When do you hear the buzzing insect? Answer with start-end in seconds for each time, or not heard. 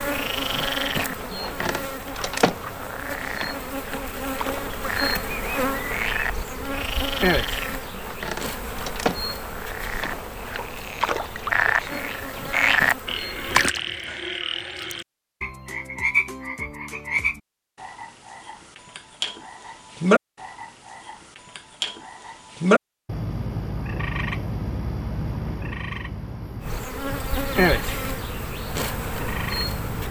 0.0-13.8, 26.6-30.0.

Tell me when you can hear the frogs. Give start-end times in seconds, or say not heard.
0.0-30.0.